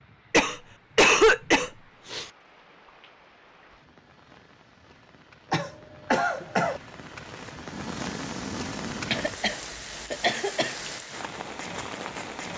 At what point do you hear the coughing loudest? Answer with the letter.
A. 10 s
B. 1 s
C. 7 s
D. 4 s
B.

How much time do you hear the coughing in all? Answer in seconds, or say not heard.
5 s.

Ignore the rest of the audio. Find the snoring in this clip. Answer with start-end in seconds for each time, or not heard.
7.7-9.3.